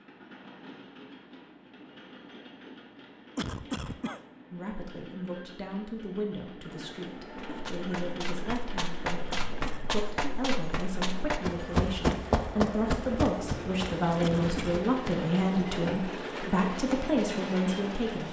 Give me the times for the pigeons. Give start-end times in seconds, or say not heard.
not heard.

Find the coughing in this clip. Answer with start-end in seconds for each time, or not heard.
3.4-4.2, 9.3-10.0, 14.2-14.9.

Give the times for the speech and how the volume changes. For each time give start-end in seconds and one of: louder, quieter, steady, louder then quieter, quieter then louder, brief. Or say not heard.
4.5-18.2 louder.